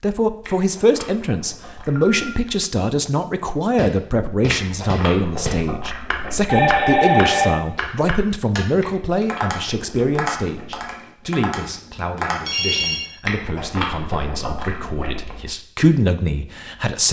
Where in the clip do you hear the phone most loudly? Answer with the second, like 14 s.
7 s.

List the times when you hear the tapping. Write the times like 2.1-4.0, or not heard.
3.8-12.4.